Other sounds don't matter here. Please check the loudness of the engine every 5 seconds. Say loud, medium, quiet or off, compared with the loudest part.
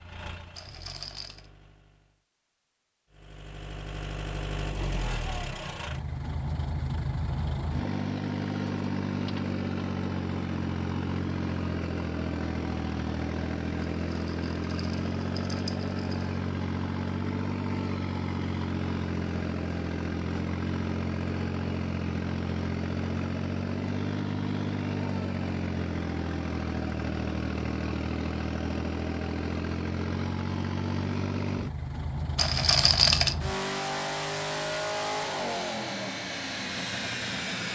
medium, loud, loud, loud, loud, loud, loud, loud.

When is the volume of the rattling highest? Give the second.
33 s.